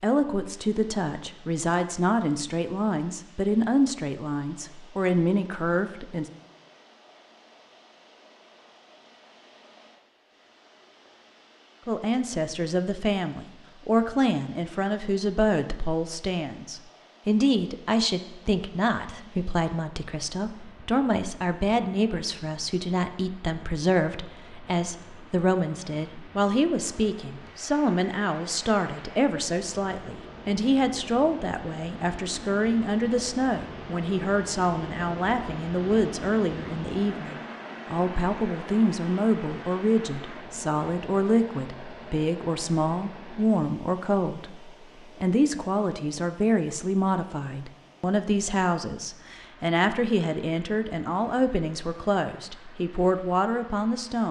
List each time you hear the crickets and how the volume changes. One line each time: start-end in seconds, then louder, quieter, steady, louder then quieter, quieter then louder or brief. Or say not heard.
not heard.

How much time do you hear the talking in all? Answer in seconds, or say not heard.
49 s.